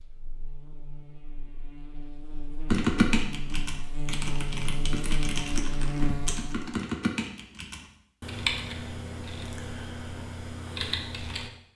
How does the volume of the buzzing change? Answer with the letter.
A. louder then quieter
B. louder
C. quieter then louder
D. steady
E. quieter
B.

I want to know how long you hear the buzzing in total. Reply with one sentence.
You can hear the buzzing for 7 seconds altogether.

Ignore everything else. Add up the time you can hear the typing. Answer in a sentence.
The typing can be heard for 9 seconds in total.